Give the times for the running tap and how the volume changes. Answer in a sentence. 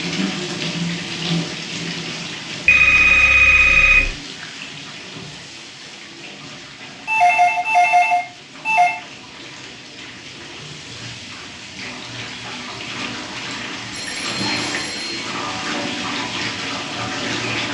You can hear the running tap from 0.0 to 17.6 s, getting quieter then louder.